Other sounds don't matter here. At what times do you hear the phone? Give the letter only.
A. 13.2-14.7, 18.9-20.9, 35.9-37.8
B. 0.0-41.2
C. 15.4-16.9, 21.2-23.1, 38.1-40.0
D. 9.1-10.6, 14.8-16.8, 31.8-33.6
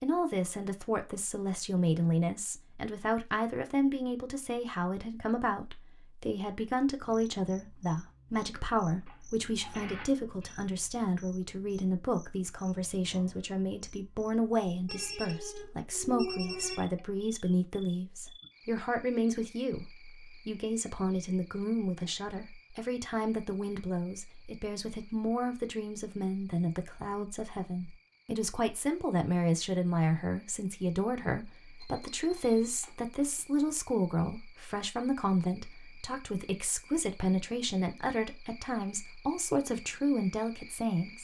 D.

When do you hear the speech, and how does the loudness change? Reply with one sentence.
You can hear the speech from 0.0 to 41.2 s, at a steady volume.